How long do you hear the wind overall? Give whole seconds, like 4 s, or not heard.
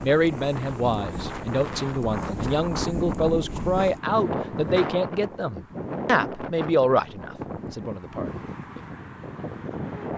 10 s.